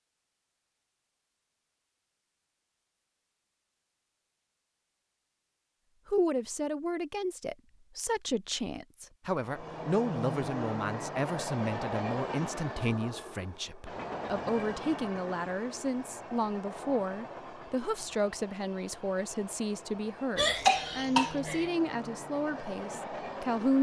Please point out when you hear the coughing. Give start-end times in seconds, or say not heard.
20.4-21.7.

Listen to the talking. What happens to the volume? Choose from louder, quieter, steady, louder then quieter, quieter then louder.
steady.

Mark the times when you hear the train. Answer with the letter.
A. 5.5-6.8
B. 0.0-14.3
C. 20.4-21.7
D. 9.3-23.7
D.